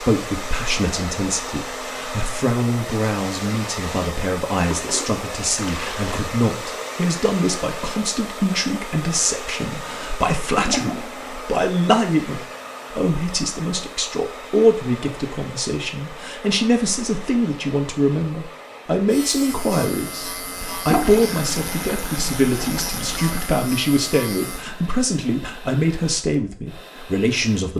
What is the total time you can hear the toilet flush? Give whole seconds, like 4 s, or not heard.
5 s.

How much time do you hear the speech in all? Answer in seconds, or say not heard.
28 s.